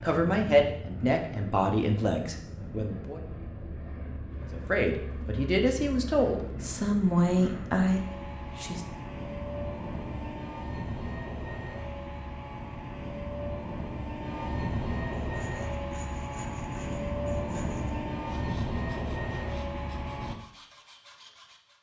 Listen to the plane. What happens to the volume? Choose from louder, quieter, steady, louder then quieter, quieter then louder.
louder.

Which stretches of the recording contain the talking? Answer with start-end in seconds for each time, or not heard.
0.0-3.2, 4.5-8.9.